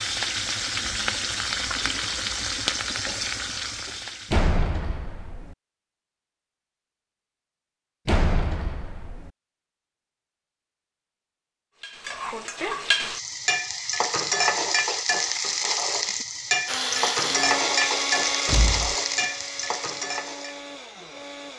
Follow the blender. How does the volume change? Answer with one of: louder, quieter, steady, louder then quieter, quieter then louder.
quieter.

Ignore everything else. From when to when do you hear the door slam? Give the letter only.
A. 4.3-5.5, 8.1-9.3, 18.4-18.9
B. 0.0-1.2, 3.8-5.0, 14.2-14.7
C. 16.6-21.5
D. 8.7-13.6
A.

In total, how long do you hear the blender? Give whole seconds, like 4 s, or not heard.
5 s.